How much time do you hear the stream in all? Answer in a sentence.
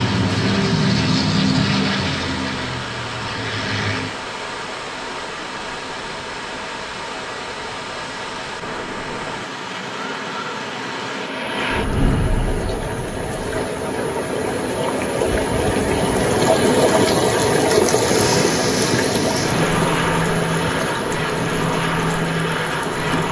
You can hear the stream for 23 seconds altogether.